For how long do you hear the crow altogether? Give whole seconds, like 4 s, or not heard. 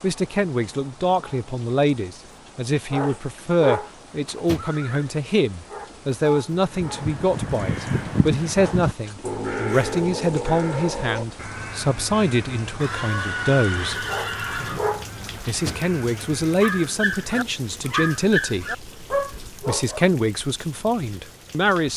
10 s.